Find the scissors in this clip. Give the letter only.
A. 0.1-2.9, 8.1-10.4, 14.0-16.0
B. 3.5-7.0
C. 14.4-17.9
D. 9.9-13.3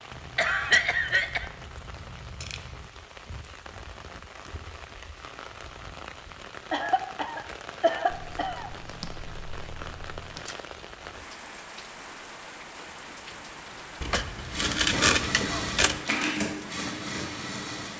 A.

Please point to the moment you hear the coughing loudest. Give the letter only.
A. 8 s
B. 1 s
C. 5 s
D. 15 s
B.